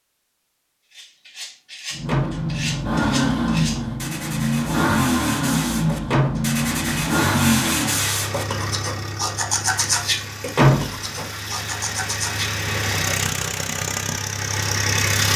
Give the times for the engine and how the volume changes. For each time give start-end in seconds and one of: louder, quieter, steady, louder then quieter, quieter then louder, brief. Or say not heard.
1.9-15.3 quieter then louder.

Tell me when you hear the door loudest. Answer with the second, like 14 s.
11 s.